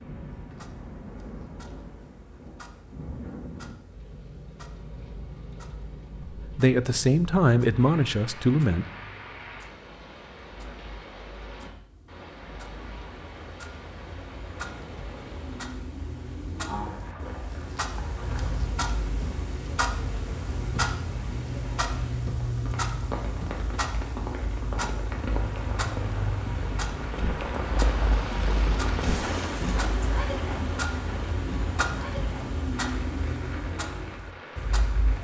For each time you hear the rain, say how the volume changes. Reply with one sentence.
You can hear the rain from 0.0 to 35.1 s, getting louder.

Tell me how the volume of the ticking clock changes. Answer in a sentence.
The loudness of the ticking clock goes up.